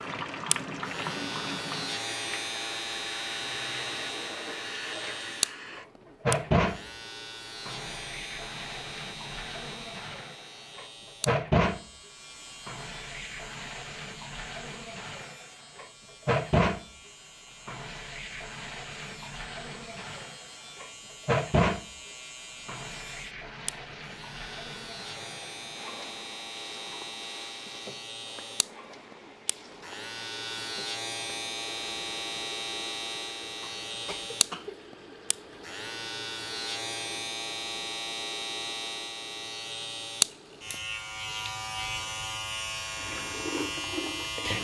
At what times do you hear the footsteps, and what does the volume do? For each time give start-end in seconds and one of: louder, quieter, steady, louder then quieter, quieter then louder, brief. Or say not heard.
not heard.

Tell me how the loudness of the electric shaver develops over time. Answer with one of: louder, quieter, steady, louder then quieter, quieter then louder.
quieter then louder.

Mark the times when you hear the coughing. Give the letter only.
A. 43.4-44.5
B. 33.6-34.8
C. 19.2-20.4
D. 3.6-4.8
B.